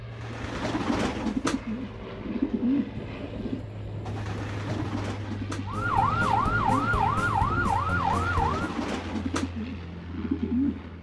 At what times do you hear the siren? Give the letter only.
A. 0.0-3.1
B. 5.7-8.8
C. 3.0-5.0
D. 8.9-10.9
B.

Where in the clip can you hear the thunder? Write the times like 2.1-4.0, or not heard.
3.0-5.0.